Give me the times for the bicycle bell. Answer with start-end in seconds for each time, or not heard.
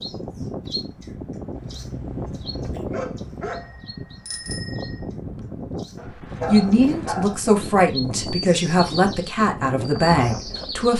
3.5-5.0.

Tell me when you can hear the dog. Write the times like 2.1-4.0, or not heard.
1.5-3.9, 6.0-7.4.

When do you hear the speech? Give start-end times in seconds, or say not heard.
6.5-10.9.